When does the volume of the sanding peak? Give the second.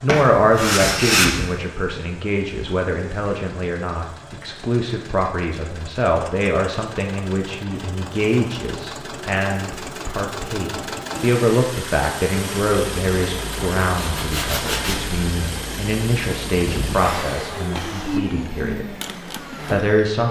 1 s.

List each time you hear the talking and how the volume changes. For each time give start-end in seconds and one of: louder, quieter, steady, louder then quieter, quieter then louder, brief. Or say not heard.
0.0-19.0 steady
19.7-20.2 brief.